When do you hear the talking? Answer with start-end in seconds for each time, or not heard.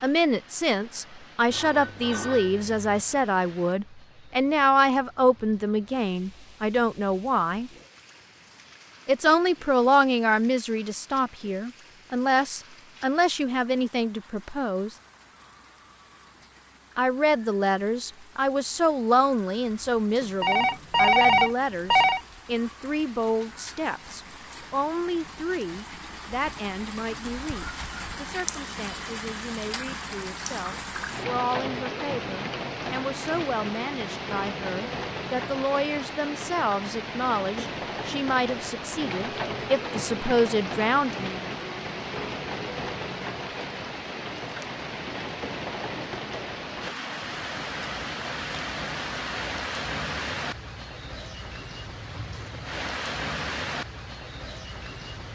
0.0-7.7, 9.1-14.9, 16.9-41.5.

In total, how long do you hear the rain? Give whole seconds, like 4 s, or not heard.
55 s.